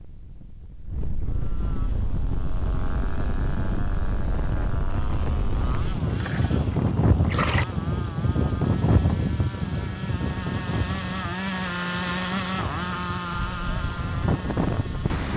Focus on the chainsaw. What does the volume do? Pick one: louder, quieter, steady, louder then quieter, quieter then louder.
louder.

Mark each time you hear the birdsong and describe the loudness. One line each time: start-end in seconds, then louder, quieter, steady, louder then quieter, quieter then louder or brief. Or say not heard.
not heard.